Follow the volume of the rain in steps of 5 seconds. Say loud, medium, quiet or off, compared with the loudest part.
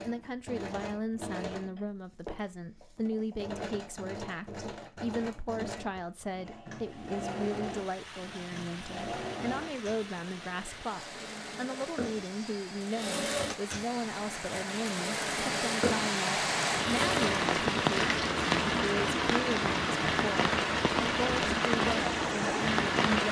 off, quiet, quiet, loud, loud.